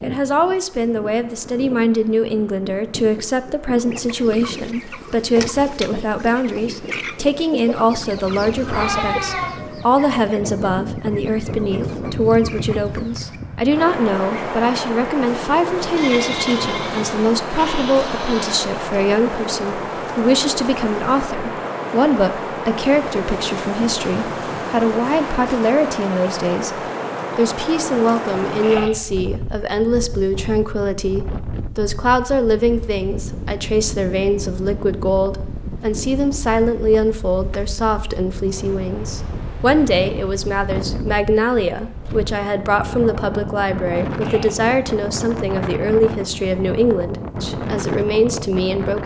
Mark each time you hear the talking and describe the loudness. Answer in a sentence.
You can hear the talking from 0.0 to 49.0 s, at a steady volume.